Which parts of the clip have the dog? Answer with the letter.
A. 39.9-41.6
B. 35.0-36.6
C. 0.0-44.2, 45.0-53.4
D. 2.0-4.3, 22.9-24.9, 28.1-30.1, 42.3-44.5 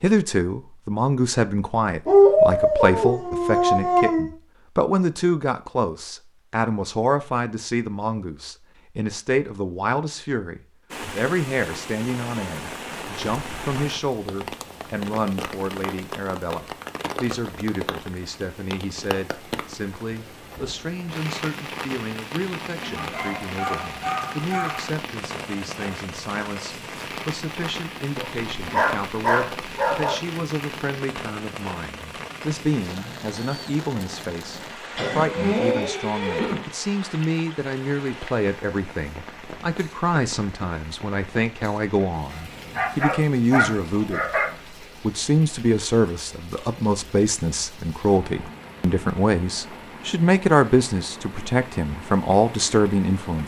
D.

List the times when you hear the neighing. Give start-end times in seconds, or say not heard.
35.0-36.6.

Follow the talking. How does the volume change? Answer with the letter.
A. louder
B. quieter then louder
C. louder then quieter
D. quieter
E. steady
B.